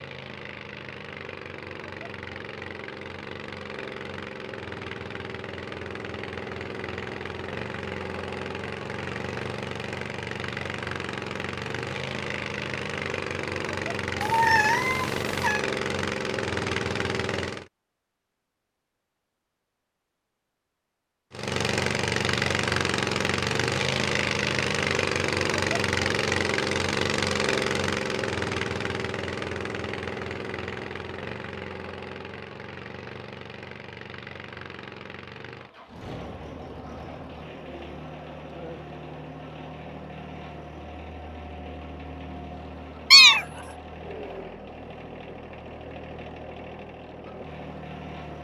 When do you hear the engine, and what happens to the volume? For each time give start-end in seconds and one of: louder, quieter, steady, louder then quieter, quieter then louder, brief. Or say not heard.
0.0-17.6 louder
21.3-48.3 quieter.